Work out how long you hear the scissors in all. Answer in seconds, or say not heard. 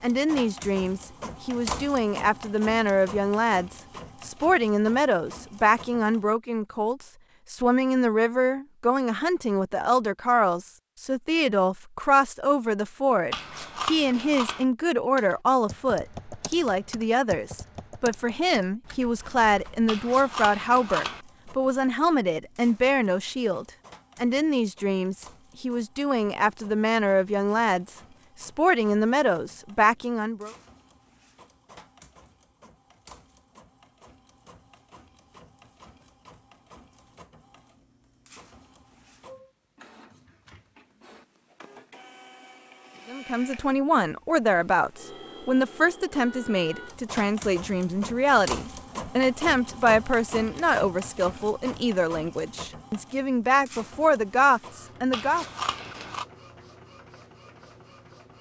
4 s.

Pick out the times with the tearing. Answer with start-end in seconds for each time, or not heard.
not heard.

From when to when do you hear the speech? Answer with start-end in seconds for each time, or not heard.
0.0-30.5, 43.0-55.5.